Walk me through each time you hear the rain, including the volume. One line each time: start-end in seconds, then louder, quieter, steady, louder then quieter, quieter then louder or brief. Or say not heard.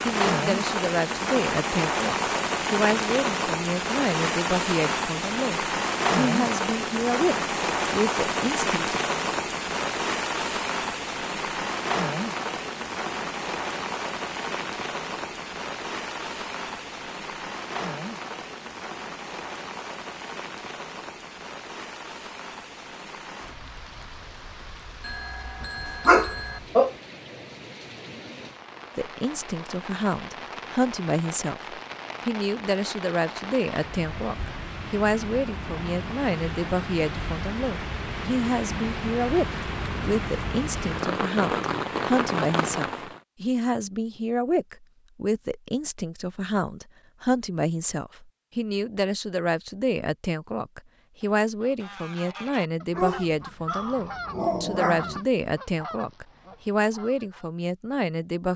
0.0-43.2 quieter then louder.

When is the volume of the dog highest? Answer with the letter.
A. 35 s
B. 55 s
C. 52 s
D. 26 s
D.